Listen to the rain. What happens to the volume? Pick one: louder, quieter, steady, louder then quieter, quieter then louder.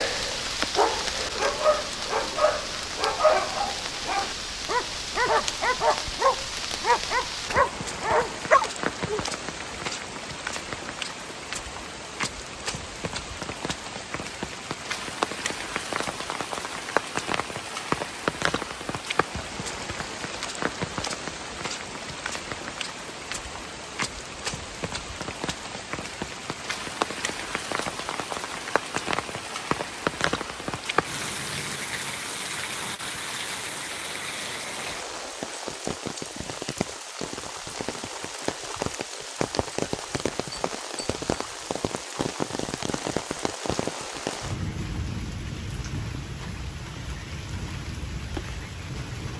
steady.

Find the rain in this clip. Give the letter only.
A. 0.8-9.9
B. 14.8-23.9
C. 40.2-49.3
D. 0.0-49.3
D.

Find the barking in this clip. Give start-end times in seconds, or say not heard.
0.8-9.9.